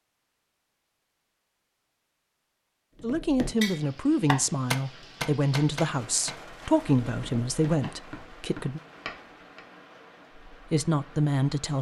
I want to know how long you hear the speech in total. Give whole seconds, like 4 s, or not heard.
7 s.